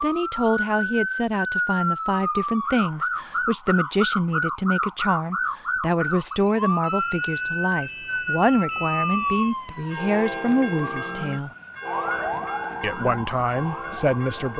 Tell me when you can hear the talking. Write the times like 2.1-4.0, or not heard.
0.0-11.5, 12.8-14.5.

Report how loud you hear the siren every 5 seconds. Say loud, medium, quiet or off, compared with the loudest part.
loud, loud, medium.